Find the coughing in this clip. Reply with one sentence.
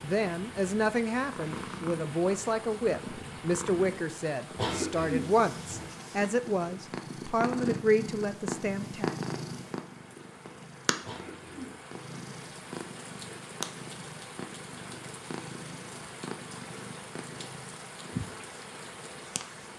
The coughing can be heard from 4.5 to 5.9 s and from 11.0 to 11.8 s.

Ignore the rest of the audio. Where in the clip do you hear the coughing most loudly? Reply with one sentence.
The volume of the coughing peaks at 5 seconds.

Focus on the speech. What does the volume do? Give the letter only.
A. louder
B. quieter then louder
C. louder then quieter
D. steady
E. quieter
D.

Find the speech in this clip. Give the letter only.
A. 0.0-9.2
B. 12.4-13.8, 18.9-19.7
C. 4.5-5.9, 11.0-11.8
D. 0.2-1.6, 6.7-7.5
A.